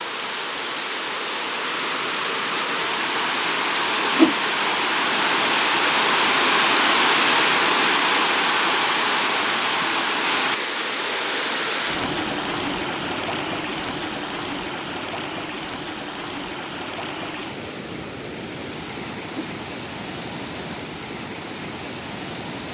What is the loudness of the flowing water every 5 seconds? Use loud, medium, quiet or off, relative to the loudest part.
medium, loud, medium, quiet, quiet.